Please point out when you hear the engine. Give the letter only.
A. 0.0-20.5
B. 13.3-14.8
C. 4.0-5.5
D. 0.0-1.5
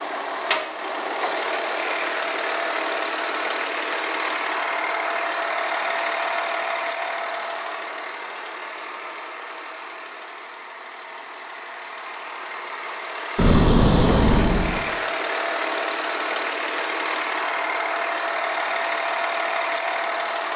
A.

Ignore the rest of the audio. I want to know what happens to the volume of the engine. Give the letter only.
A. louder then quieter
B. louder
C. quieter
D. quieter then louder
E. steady
D.